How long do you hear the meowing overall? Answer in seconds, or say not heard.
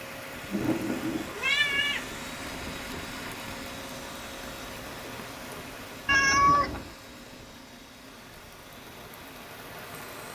2 s.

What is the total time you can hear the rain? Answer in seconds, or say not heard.
10 s.